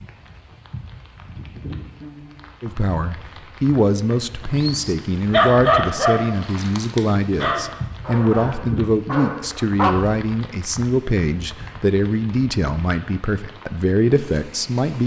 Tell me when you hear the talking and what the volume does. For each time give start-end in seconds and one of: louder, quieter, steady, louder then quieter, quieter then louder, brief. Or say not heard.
2.6-15.0 steady.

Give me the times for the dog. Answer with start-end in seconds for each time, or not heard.
4.5-9.9.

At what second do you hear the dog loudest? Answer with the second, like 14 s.
6 s.